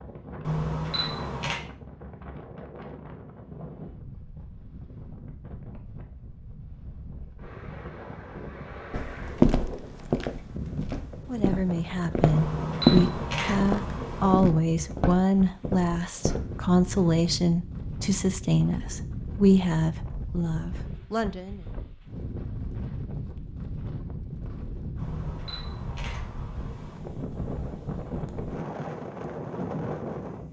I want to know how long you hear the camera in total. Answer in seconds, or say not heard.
5 s.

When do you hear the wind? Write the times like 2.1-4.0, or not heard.
0.0-30.4.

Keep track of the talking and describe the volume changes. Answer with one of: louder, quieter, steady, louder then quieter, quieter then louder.
steady.